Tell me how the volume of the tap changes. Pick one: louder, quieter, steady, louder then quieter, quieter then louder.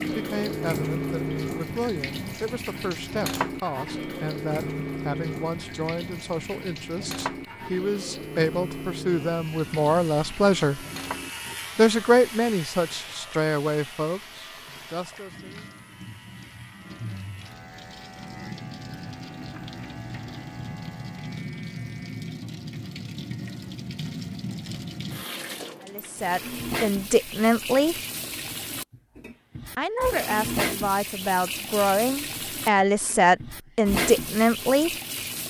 quieter then louder.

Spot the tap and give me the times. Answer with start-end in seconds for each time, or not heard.
0.0-35.4.